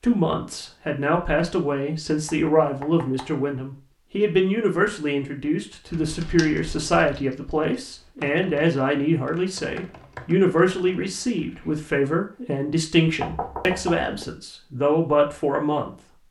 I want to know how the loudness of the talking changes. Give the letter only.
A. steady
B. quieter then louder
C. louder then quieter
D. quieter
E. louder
A.